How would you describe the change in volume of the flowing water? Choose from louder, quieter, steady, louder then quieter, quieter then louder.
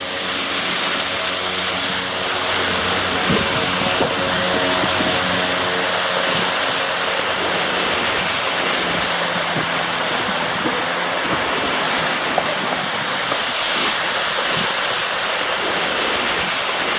steady.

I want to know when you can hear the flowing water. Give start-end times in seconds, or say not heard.
0.0-16.9.